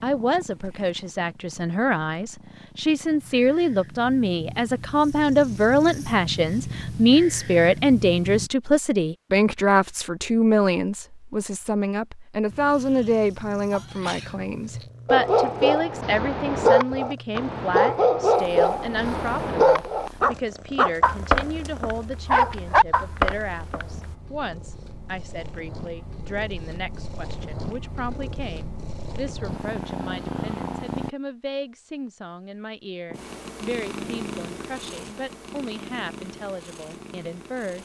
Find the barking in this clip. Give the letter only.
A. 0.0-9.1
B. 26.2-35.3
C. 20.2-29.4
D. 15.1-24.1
D.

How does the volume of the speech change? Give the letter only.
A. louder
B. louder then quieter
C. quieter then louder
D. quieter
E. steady
D.